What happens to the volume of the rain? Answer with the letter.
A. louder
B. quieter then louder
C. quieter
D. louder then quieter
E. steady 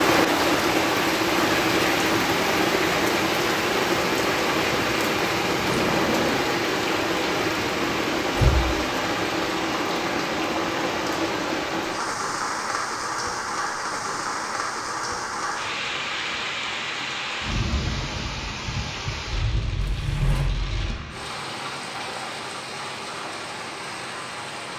C.